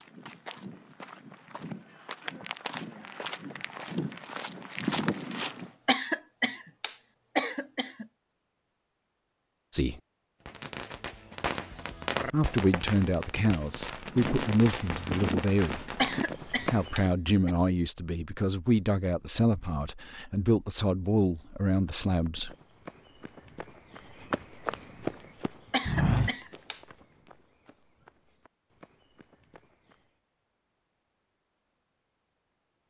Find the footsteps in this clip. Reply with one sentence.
You can hear the footsteps from 0.0 to 5.7 s, from 14.1 to 17.1 s and from 21.8 to 30.1 s.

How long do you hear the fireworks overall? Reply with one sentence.
You can hear the fireworks for 6 seconds altogether.